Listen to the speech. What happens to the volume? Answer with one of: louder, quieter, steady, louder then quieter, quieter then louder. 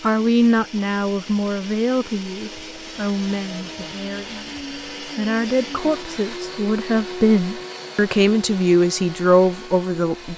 quieter then louder.